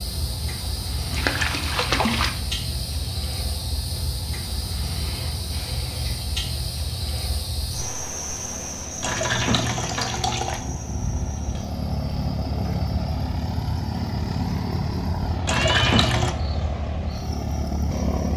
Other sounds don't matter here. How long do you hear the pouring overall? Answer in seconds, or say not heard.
4 s.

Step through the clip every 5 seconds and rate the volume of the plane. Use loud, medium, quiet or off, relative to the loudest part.
quiet, quiet, loud, loud.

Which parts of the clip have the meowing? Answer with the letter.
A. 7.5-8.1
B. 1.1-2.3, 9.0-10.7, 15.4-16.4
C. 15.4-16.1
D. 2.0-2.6
C.